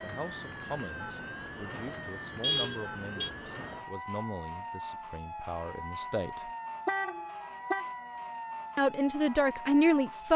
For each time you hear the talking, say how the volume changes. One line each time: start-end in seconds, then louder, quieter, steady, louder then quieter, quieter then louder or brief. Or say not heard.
0.0-6.5 steady
8.8-10.3 brief.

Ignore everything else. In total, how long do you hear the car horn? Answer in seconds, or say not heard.
2 s.